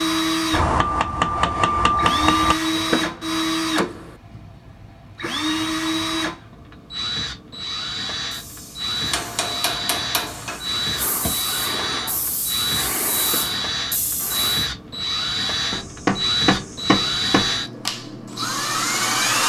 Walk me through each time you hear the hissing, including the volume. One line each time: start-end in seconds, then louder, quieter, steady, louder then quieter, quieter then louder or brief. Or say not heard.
8.3-14.7 louder.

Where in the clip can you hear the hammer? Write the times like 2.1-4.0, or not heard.
0.5-2.5, 9.1-10.6, 15.7-17.6.